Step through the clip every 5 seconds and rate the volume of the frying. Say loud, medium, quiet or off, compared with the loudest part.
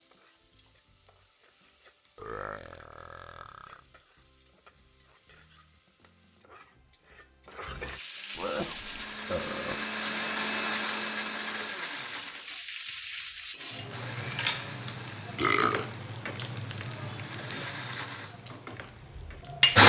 quiet, medium, loud, loud.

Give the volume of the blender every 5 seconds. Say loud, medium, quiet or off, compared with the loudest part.
off, quiet, medium, loud.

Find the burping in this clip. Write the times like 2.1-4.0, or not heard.
2.1-3.8, 8.3-9.8, 15.3-15.8.